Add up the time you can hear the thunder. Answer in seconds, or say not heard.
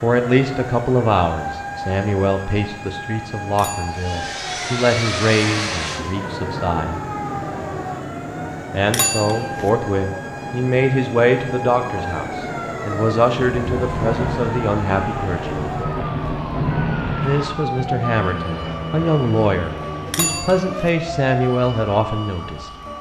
4 s.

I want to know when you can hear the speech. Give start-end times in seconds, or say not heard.
0.0-7.0, 8.7-15.6, 17.2-22.7.